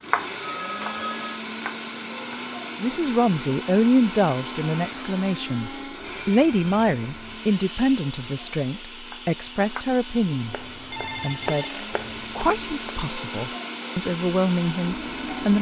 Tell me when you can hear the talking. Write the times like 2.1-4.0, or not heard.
2.8-11.7, 12.3-15.5.